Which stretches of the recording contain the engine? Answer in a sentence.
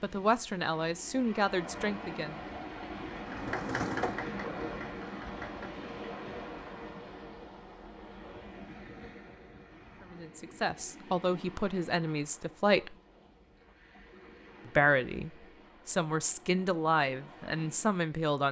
You can hear the engine from 3.1 to 6.0 s.